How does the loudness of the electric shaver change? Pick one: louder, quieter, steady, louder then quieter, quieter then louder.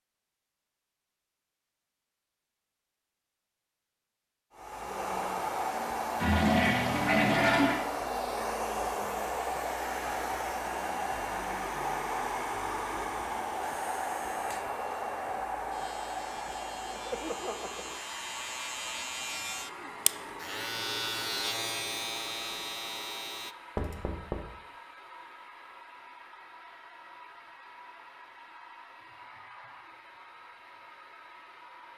louder.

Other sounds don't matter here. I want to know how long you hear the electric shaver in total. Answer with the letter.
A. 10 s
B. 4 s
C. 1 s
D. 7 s
A.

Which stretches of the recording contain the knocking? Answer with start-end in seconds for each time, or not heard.
23.8-24.4.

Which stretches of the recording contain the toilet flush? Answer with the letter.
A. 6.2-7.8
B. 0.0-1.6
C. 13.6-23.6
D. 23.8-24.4
A.